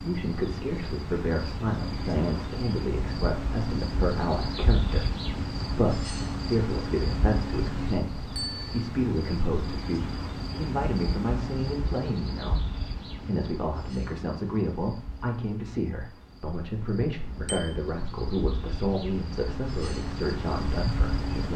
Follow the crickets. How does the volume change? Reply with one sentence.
The loudness of the crickets goes down, then up.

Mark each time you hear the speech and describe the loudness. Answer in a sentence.
You can hear the speech from 0.0 to 12.6 s, at a steady volume; and from 13.2 to 21.5 s, at a steady volume.